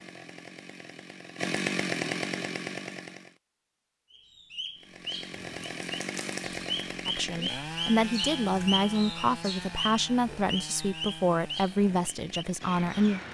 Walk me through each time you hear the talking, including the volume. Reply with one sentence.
You can hear the talking from 7.0 to 13.2 s, at a steady volume.